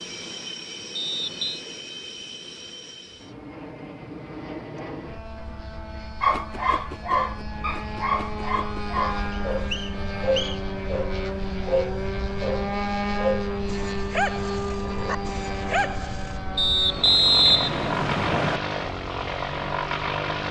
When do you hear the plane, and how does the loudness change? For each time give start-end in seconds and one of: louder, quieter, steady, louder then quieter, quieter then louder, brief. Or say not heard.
0.0-20.4 louder.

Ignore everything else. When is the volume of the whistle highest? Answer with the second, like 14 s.
17 s.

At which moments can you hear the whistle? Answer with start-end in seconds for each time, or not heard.
0.9-1.6, 9.3-10.8, 16.6-18.6.